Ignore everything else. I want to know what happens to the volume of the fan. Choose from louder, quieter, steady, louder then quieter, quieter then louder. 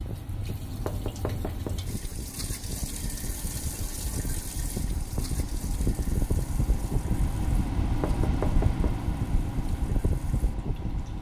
louder.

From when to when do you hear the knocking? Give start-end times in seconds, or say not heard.
0.8-1.8, 8.0-8.8.